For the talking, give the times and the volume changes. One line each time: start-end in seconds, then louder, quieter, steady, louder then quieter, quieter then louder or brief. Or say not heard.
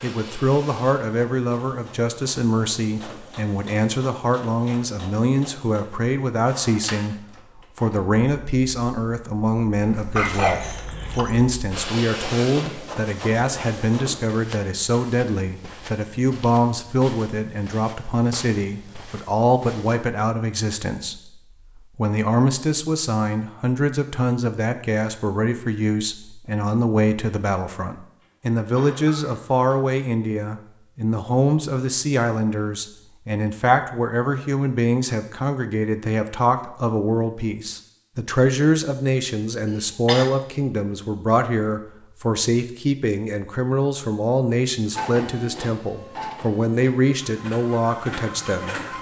0.0-48.8 steady.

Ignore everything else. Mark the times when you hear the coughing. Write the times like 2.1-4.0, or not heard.
10.2-11.2, 28.2-29.9, 39.6-40.3.